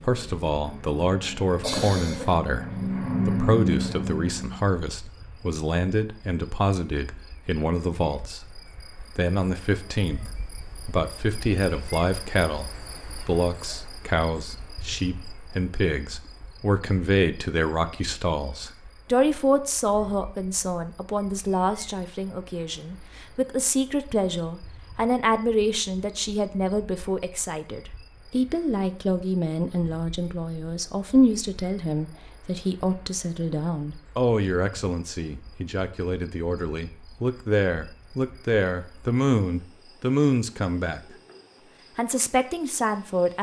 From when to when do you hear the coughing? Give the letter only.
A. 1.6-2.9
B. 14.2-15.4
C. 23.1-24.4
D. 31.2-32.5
A.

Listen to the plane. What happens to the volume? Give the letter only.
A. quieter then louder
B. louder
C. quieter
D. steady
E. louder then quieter
B.